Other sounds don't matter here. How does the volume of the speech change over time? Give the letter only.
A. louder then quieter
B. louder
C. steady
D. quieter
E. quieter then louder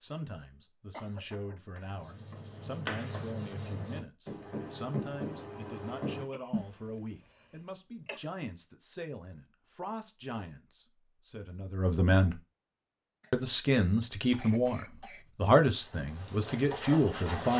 B.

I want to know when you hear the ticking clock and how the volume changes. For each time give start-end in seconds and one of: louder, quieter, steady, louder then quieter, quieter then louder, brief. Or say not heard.
not heard.